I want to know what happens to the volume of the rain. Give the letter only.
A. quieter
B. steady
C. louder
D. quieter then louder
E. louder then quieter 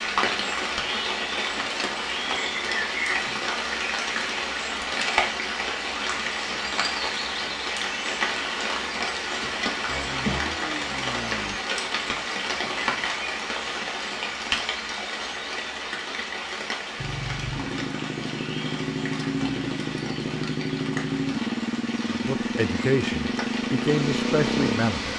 A.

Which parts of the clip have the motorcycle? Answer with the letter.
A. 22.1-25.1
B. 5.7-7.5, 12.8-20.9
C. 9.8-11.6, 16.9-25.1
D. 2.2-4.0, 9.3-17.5
C.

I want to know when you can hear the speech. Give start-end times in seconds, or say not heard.
22.1-25.1.